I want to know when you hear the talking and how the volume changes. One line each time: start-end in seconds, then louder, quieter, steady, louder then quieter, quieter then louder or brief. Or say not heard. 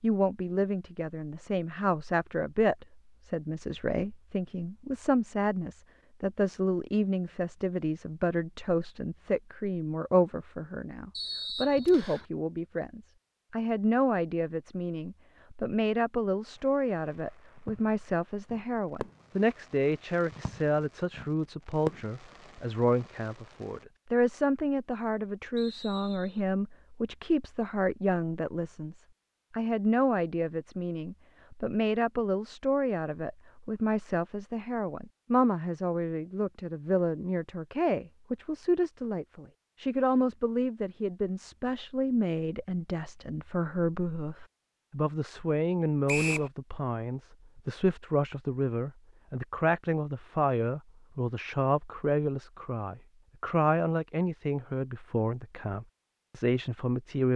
0.0-57.3 steady.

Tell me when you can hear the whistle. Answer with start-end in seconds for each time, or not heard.
11.2-12.2, 25.6-26.4, 46.0-46.5.